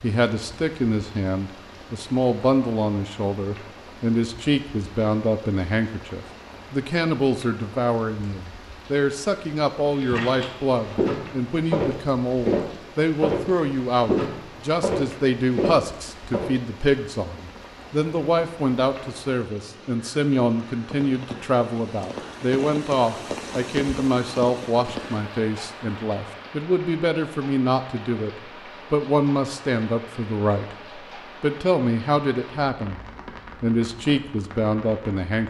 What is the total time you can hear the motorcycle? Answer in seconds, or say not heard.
not heard.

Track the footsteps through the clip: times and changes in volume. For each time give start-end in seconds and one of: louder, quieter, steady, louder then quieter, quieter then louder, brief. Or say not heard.
9.9-16.6 steady.